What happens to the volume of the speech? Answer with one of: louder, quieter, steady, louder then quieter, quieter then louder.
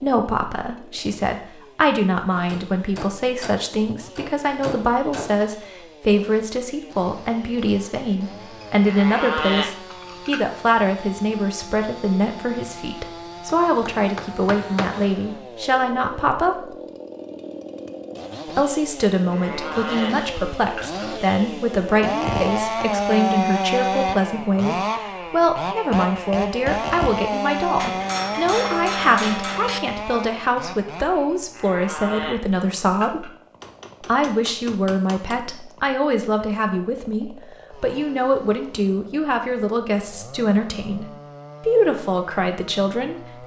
steady.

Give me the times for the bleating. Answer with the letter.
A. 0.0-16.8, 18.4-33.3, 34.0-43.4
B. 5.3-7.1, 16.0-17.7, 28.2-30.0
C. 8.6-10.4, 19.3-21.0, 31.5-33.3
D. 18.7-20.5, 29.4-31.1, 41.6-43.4
C.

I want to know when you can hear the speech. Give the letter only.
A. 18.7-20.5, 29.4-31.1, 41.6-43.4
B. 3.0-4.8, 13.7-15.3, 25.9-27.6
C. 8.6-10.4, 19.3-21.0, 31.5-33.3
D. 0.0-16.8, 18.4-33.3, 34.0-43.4
D.